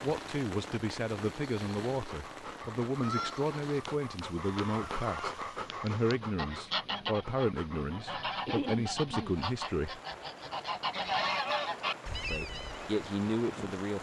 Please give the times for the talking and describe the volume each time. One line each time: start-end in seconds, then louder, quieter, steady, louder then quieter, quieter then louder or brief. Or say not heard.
0.0-10.0 steady
12.3-13.9 brief.